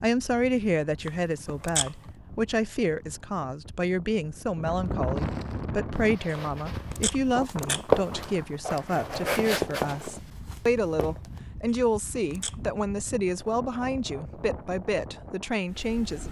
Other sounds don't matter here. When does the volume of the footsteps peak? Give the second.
8 s.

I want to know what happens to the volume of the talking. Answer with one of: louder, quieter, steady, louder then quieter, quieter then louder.
steady.